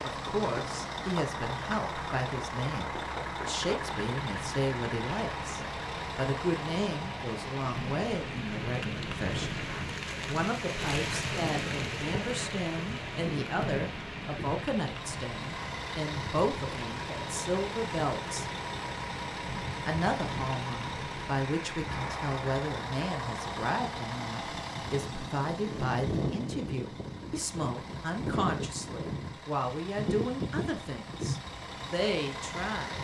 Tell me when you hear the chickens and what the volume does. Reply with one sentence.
The chickens can't be heard in this clip.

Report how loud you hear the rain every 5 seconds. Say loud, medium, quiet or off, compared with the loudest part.
medium, loud, loud, medium, medium, off, off.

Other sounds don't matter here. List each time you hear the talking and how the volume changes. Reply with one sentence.
You can hear the talking from 0.0 to 9.7 s, at a steady volume; from 10.2 to 18.4 s, at a steady volume; and from 19.9 to 33.0 s, at a steady volume.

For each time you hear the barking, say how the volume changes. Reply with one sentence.
You can't hear the barking here.